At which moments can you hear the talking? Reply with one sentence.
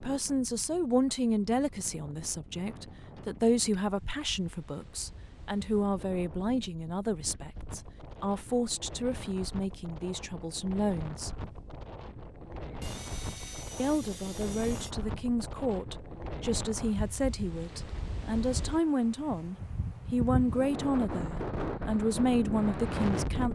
The talking can be heard from 0.0 to 11.4 s and from 13.8 to 23.4 s.